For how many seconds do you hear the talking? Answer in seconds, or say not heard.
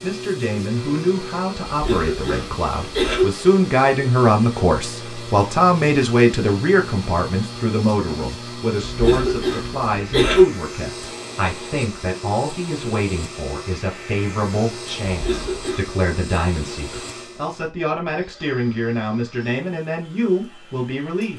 21 s.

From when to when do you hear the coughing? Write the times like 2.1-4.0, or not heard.
1.7-3.2, 8.8-10.4, 15.1-15.8.